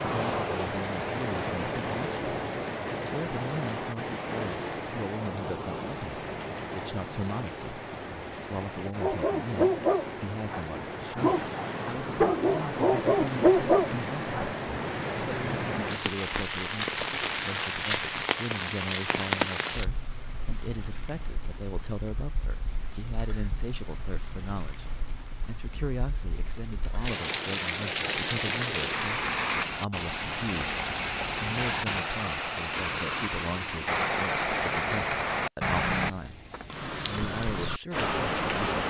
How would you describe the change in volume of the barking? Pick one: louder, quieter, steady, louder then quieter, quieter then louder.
quieter then louder.